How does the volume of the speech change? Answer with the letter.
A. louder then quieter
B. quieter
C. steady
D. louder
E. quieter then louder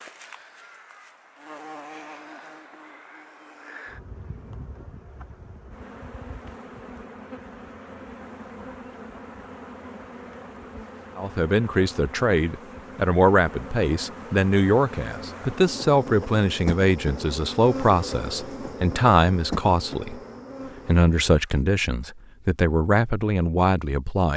C.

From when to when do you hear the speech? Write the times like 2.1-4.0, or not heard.
11.2-20.2, 20.9-24.3.